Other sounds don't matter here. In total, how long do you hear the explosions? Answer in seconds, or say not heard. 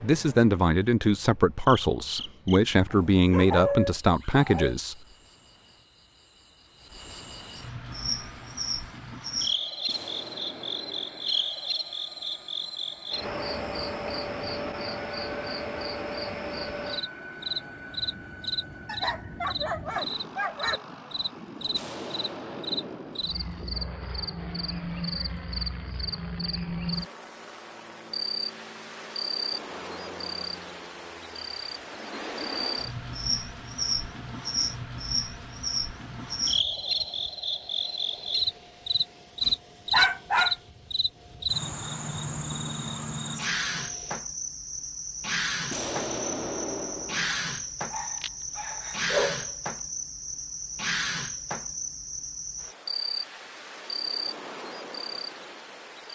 5 s.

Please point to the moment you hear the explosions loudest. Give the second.
46 s.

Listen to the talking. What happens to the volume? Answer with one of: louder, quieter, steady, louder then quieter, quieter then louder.
steady.